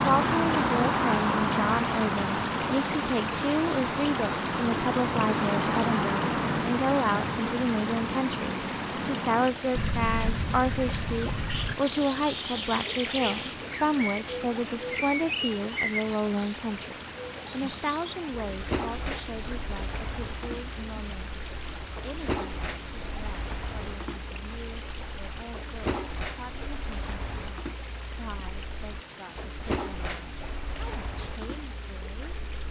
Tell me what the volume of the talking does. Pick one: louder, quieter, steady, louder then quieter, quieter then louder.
quieter.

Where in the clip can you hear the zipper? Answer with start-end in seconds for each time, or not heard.
not heard.